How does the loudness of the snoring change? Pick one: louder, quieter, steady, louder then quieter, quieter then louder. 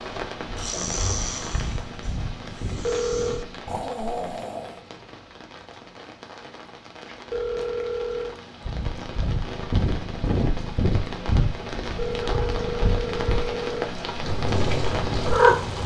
quieter then louder.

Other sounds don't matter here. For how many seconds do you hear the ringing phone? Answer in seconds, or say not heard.
4 s.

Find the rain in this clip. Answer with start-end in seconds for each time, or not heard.
0.0-15.8.